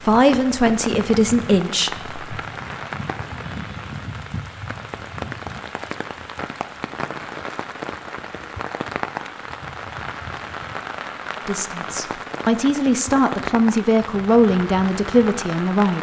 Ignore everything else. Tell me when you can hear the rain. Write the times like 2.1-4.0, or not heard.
0.0-15.9.